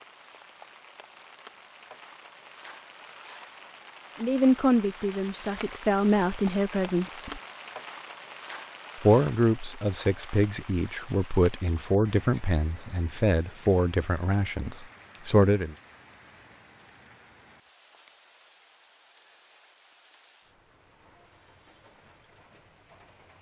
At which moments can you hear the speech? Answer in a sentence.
You can hear the speech from 4.2 to 7.4 s and from 9.0 to 15.8 s.